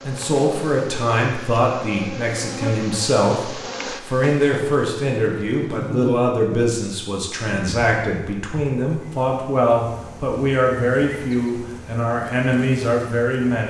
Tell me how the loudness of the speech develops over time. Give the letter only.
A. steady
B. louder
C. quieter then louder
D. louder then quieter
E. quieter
A.